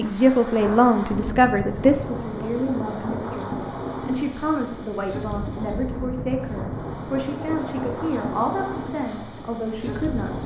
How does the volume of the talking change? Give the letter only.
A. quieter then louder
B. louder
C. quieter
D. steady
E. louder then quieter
C.